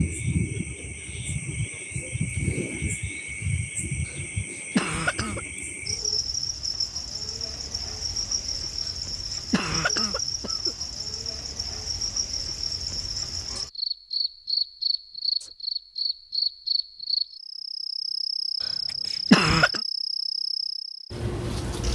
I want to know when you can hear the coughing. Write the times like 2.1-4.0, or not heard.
4.8-5.4, 9.5-10.8, 19.3-19.8.